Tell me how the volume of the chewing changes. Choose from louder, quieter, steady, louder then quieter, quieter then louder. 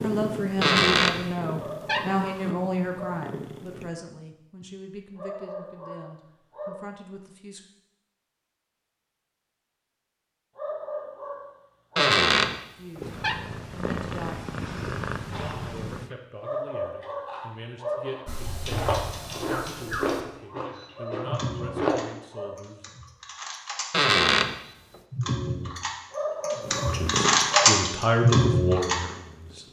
louder then quieter.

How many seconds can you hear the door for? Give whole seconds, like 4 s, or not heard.
4 s.